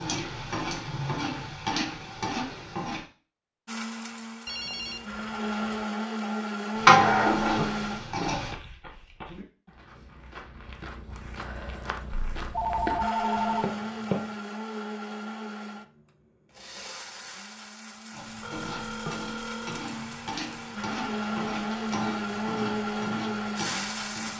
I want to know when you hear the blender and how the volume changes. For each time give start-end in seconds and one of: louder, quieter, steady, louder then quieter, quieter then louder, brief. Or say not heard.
3.6-8.2 louder
13.0-24.3 quieter then louder.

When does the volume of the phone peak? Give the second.
13 s.